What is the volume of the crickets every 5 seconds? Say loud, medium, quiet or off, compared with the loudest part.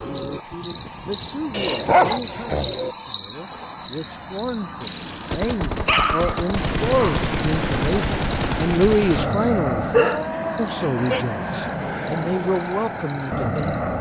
loud, medium, quiet.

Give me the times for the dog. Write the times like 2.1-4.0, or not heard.
1.5-3.0, 4.8-7.4, 9.9-11.2.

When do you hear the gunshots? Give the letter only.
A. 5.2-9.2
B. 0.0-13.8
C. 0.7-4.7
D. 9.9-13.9
A.